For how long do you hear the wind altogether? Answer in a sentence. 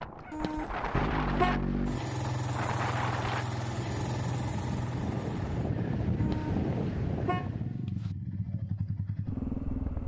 The wind can be heard for 8 seconds in total.